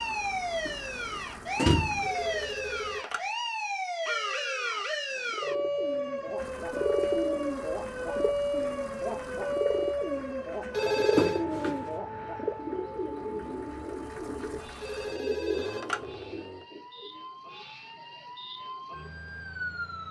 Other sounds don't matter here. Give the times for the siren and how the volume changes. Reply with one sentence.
The siren can be heard from 0.0 to 20.0 s, getting quieter.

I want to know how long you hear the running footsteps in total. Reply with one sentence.
The running footsteps can't be heard in this clip.